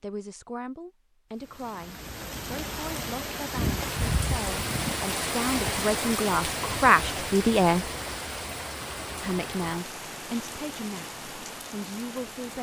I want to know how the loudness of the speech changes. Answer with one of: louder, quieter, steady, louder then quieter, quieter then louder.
louder then quieter.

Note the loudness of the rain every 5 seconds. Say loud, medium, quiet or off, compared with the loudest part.
loud, loud, medium.